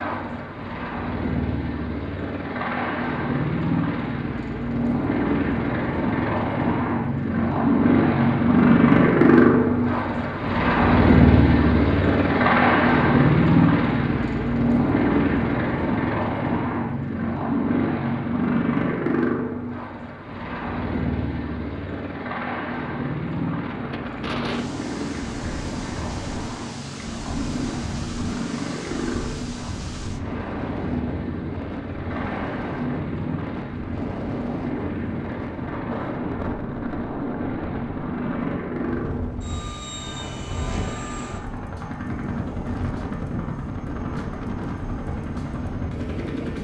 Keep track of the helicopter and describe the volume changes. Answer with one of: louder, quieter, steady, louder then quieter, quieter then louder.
quieter.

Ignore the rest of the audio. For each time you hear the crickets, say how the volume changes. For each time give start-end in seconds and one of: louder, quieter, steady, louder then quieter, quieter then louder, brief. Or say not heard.
not heard.